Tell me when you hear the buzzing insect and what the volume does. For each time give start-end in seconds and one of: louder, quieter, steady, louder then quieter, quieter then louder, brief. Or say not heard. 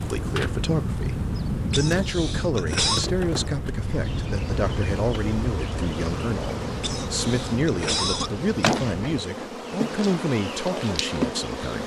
0.0-11.8 louder.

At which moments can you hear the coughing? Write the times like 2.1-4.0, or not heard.
1.7-3.0, 6.8-8.7.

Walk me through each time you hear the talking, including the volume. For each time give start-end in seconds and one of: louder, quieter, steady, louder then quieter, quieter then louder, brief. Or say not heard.
0.0-11.8 steady.